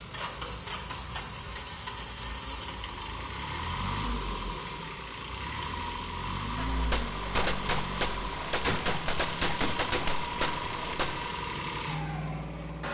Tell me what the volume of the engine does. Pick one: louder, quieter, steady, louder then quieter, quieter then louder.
steady.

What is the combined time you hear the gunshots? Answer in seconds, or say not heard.
5 s.